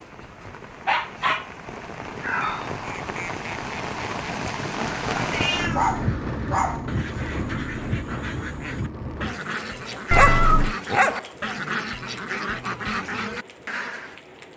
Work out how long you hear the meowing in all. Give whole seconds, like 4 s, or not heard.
2 s.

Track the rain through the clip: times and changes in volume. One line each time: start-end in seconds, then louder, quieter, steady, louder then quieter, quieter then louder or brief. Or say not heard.
0.0-14.5 louder then quieter.